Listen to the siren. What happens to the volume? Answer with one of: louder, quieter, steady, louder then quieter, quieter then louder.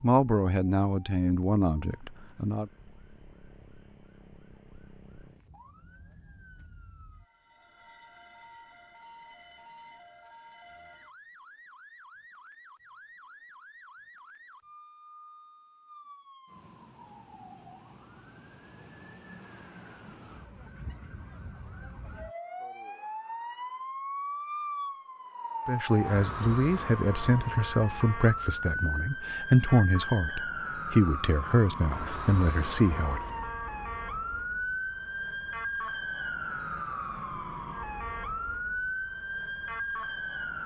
louder.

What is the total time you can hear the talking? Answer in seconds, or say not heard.
10 s.